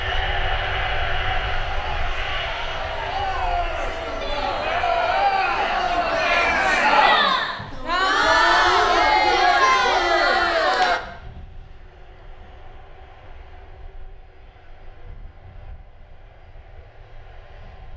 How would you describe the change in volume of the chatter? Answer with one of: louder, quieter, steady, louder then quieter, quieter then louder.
louder.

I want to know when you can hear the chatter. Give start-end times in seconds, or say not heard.
0.0-11.0.